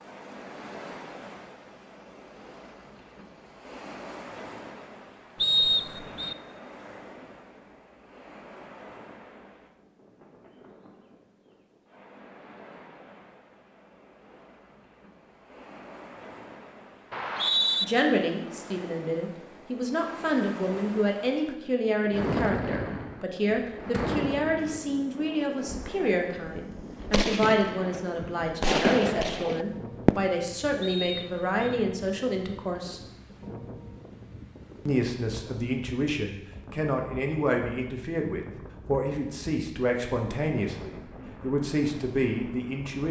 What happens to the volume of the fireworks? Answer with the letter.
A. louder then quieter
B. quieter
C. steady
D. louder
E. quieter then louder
E.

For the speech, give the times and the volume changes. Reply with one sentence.
The speech can be heard from 17.8 to 33.0 s, at a steady volume; and from 34.9 to 43.0 s, at a steady volume.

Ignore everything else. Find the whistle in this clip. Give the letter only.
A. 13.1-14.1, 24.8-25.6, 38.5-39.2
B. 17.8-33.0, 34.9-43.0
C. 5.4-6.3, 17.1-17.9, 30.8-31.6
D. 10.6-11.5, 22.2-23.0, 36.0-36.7
C.